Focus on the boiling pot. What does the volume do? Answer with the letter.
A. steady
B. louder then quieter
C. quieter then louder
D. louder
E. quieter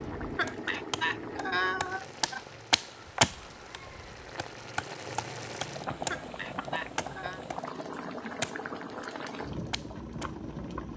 C.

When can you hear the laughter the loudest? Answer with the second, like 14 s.
2 s.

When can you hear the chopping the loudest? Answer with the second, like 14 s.
3 s.